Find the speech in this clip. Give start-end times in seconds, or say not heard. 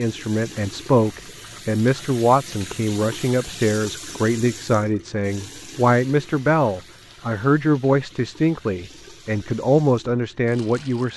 0.0-11.1.